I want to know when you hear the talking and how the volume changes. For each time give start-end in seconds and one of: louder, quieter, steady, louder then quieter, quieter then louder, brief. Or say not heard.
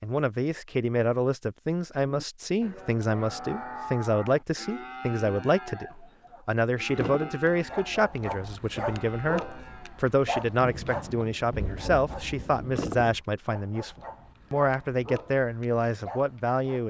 0.0-16.8 steady.